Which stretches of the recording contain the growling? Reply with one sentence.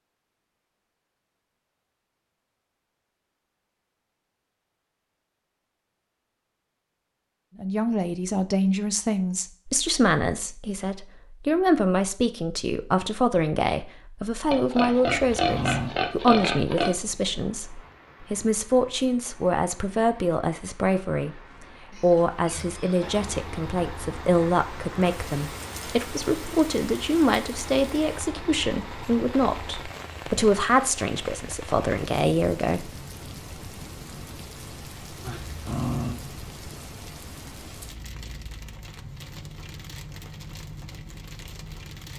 You can hear the growling from 15.1 to 15.9 s and from 35.2 to 36.2 s.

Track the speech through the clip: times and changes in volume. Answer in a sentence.
The speech can be heard from 7.6 to 32.9 s, at a steady volume.